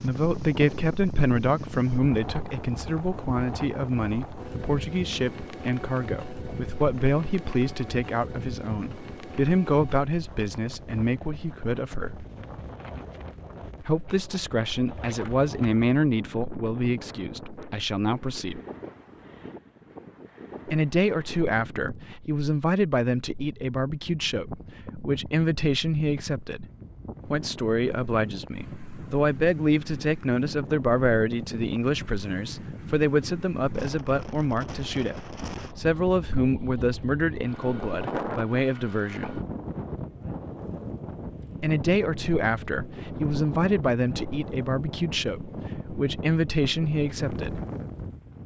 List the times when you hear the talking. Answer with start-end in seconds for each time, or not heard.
0.0-12.2, 13.8-18.6, 20.6-26.6, 27.2-39.4, 41.6-47.6.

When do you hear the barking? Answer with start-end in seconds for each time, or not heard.
not heard.